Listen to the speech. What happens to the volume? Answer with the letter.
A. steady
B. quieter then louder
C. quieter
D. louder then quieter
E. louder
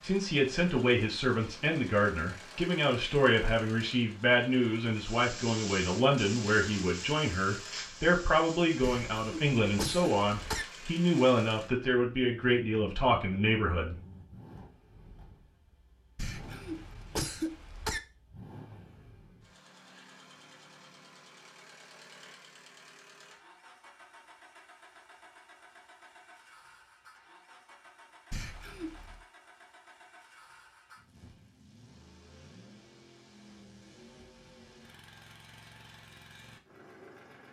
A.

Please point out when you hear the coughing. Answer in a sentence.
The coughing can be heard from 8.8 to 10.7 s, from 16.1 to 18.0 s and from 28.3 to 29.2 s.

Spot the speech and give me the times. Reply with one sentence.
You can hear the speech from 0.0 to 13.9 s.